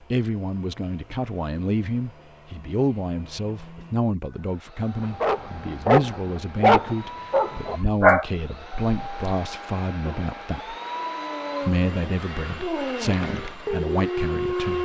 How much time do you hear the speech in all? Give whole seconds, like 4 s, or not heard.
14 s.